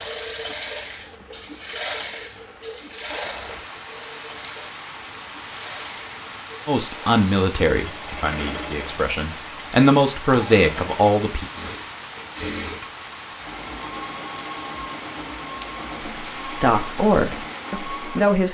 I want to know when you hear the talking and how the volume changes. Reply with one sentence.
You can hear the talking from 6.7 to 11.4 s, getting quieter then louder; and briefly from 16.0 to 18.4 s.